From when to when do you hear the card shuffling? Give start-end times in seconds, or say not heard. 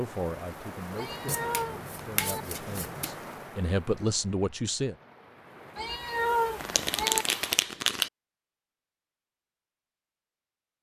1.2-3.1, 6.5-8.1.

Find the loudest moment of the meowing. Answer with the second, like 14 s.
6 s.